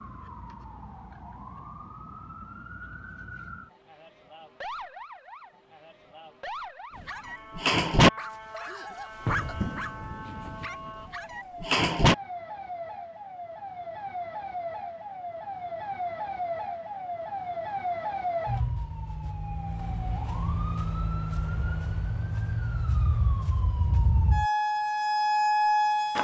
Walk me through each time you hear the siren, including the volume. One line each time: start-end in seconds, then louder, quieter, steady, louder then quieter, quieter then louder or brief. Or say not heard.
0.0-26.1 louder.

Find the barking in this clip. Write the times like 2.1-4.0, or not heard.
7.0-12.2.